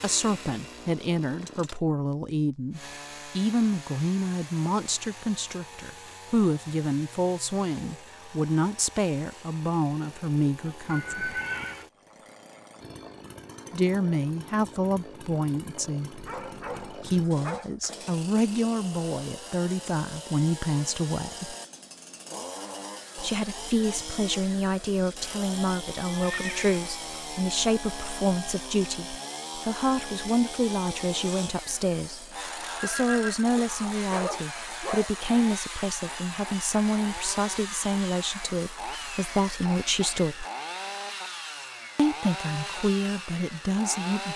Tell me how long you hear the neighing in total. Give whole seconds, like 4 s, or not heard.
3 s.